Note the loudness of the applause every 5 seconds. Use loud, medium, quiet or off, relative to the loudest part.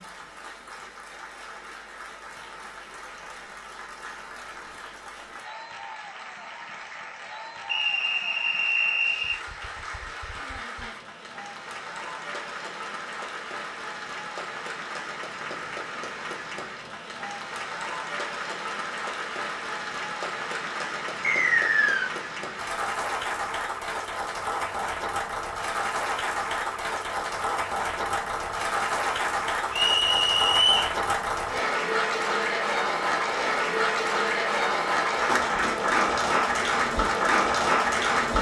quiet, quiet, quiet, medium, medium, medium, loud, loud.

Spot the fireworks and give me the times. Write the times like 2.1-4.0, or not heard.
not heard.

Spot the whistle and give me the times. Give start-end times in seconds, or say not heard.
7.7-9.3, 21.2-22.1, 29.7-30.9.